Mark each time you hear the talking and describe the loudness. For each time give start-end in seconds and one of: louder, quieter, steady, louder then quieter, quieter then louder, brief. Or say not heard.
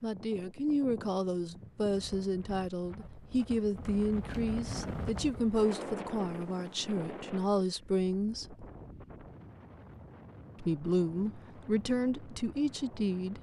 0.0-8.7 steady
10.6-13.3 brief.